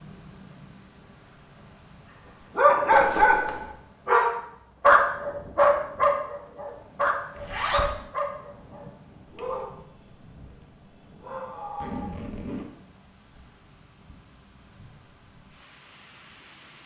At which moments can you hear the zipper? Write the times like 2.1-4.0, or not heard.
2.9-3.6, 7.3-7.9, 11.8-12.7.